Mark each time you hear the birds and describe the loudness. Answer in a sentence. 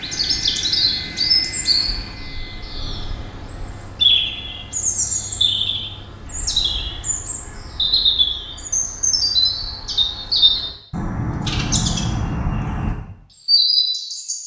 The birds can be heard from 0.0 to 14.4 s, at a steady volume.